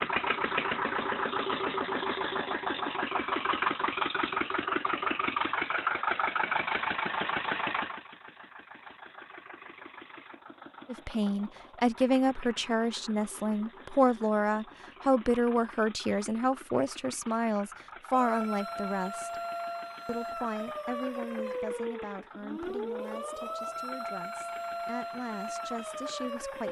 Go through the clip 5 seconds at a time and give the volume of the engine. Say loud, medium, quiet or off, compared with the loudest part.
loud, loud, quiet, quiet, quiet, quiet.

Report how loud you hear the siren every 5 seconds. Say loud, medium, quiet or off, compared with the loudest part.
off, off, off, loud, loud, loud.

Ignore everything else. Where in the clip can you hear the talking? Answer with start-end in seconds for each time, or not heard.
10.8-19.4, 20.1-26.6.